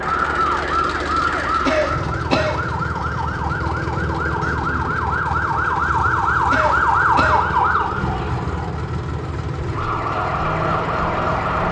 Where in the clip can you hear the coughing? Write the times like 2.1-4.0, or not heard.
1.6-2.6, 6.5-7.5.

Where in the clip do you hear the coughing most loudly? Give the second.
2 s.